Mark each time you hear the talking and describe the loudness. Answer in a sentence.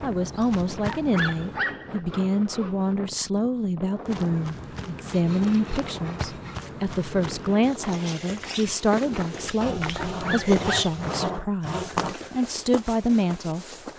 You can hear the talking from 0.0 to 13.7 s, at a steady volume.